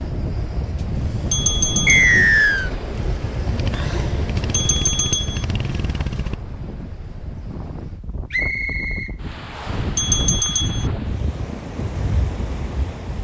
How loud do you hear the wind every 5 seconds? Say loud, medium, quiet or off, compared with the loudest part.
loud, medium, loud.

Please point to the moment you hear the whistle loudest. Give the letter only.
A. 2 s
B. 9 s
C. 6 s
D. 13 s
A.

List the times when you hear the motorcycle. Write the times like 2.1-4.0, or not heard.
2.9-6.4.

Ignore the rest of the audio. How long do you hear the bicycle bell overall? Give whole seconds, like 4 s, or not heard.
3 s.